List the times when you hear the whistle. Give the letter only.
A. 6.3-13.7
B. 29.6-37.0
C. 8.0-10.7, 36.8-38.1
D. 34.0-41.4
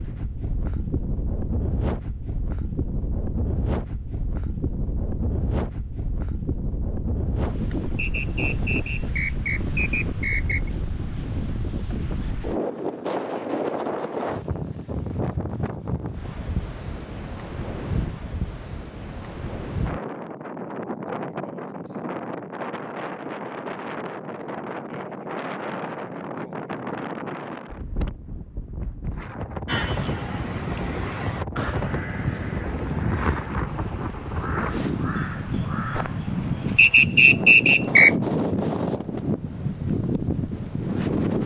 C.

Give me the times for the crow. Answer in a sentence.
The crow can be heard from 29.6 to 37.0 s.